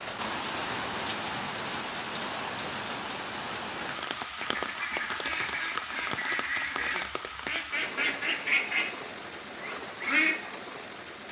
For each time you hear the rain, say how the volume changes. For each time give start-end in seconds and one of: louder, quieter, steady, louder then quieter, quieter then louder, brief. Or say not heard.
0.0-11.2 quieter.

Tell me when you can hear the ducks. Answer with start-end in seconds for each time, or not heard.
4.3-10.4.